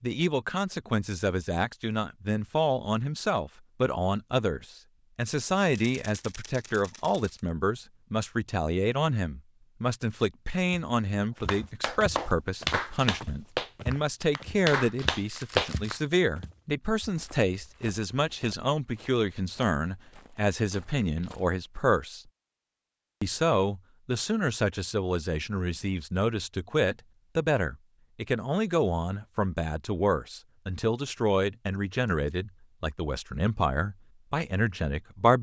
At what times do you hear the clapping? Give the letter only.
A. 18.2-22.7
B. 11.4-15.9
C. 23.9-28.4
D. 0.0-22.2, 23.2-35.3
B.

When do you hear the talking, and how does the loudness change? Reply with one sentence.
You can hear the talking from 0.0 to 22.2 s, at a steady volume; and from 23.2 to 35.3 s, at a steady volume.